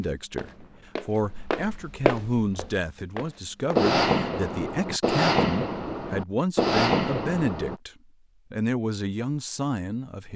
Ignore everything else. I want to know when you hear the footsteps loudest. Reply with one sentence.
The volume of the footsteps peaks at 2 seconds.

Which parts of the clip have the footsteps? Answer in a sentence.
The footsteps can be heard from 0.0 to 4.0 s.